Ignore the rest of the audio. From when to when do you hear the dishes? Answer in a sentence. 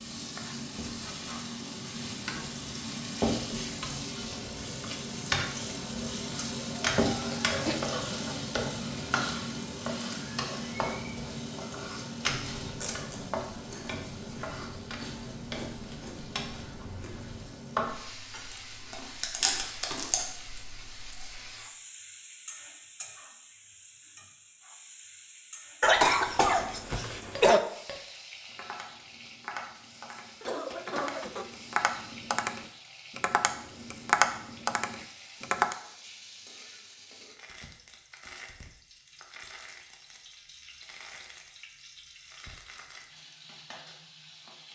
You can't hear the dishes here.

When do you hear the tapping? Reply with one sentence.
The tapping can be heard from 27.4 to 35.8 s.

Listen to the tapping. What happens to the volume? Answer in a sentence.
The volume of the tapping goes up.